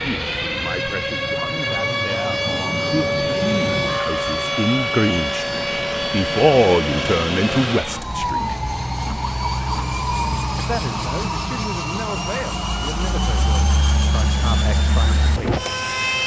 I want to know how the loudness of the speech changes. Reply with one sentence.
The volume of the speech goes up, then down.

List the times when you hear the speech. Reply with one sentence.
You can hear the speech from 0.0 to 8.6 s and from 10.6 to 15.7 s.